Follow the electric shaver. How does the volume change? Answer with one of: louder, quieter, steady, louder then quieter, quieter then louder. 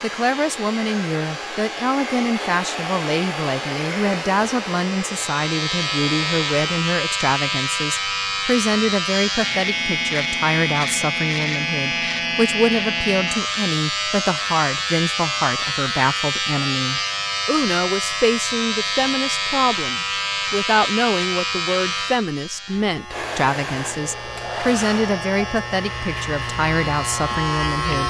louder then quieter.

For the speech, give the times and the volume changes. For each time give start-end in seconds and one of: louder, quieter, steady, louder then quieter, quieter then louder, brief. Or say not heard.
0.0-28.0 steady.